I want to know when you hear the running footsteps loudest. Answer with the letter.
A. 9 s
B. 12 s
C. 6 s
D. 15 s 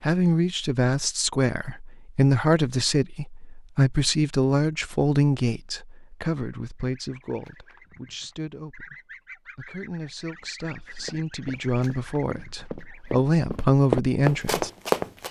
D.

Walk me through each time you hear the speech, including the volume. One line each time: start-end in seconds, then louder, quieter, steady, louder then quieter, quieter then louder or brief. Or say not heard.
0.0-14.7 quieter then louder.